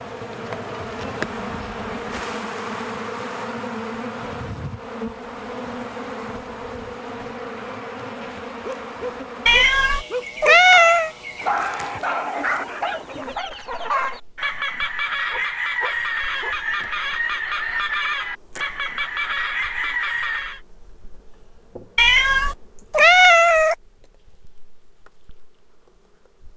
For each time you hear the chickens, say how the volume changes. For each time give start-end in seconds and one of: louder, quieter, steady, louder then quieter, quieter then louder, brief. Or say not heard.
11.5-20.6 louder.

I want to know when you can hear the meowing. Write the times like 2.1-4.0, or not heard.
9.4-11.1, 21.9-23.8.